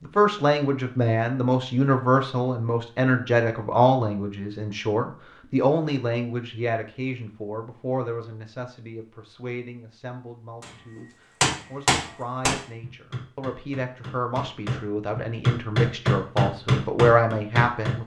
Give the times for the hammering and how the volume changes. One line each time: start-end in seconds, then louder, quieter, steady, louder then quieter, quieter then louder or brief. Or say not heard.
10.6-17.9 quieter then louder.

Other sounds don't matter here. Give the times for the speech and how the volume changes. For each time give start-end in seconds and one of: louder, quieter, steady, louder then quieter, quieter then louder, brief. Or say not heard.
0.0-18.0 quieter then louder.